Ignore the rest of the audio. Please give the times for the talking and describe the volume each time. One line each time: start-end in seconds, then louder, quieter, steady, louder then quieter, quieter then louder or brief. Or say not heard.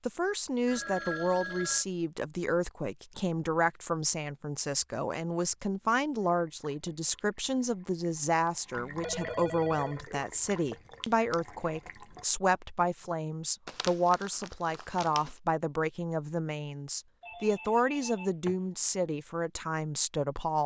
0.1-20.6 steady.